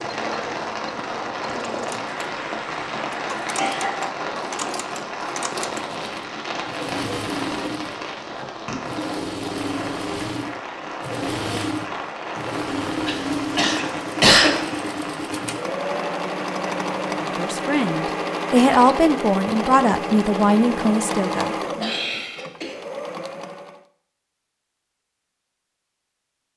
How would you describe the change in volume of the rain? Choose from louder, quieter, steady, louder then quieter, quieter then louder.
steady.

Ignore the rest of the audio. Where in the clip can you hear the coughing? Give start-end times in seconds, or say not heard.
2.0-4.0, 13.1-14.8, 21.8-22.8.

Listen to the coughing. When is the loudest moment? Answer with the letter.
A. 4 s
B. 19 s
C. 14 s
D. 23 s
C.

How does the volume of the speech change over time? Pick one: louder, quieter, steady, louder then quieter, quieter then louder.
louder then quieter.